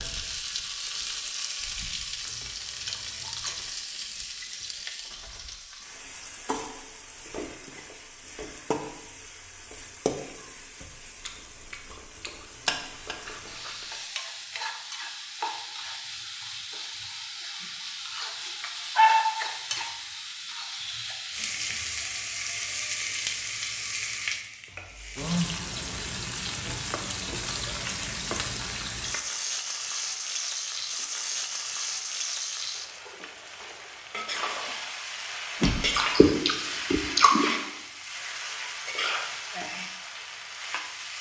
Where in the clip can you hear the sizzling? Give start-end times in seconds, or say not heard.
0.0-41.1.